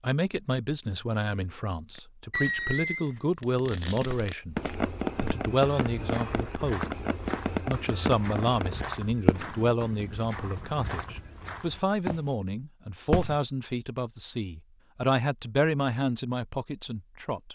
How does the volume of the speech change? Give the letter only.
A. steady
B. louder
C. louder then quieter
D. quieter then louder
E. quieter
A.